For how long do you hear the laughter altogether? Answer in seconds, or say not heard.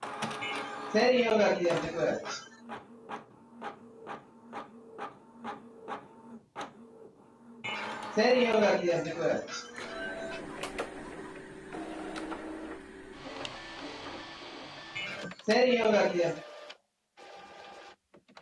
6 s.